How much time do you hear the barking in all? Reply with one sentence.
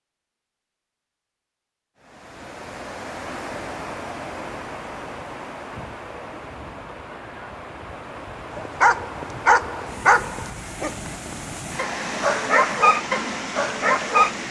You can hear the barking for 6 seconds altogether.